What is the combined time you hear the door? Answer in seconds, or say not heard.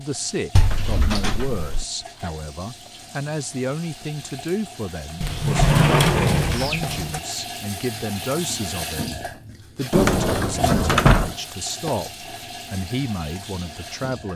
5 s.